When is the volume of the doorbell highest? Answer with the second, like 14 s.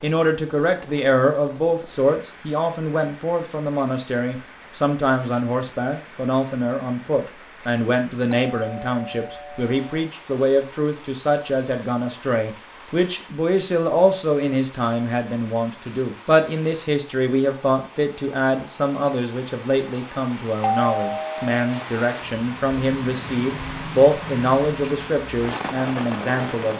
21 s.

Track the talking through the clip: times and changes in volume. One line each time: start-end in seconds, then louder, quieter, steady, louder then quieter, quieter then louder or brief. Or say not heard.
0.0-26.7 steady.